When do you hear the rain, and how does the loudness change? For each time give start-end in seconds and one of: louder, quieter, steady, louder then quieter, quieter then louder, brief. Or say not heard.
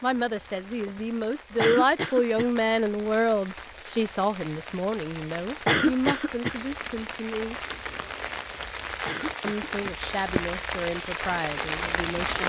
0.0-12.4 louder.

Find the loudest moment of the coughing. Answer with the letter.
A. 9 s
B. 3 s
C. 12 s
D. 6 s
D.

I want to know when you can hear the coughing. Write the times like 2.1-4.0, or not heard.
1.6-2.5, 5.7-6.5, 9.1-9.7.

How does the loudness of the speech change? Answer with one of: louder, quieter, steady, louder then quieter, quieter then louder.
quieter.